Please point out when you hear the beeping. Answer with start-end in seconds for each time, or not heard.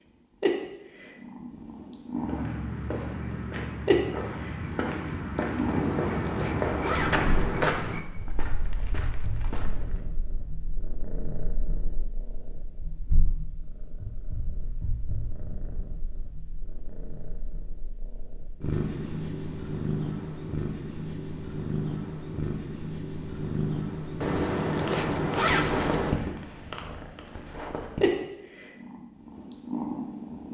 not heard.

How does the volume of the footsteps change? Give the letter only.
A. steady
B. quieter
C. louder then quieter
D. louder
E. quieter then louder
C.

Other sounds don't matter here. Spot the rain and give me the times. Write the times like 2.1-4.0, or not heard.
not heard.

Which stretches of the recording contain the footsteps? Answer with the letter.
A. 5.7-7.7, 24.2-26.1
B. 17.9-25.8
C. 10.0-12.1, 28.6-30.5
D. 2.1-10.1
D.